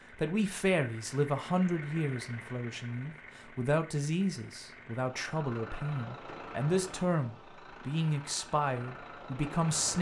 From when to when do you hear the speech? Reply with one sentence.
The speech can be heard from 0.1 to 9.9 s.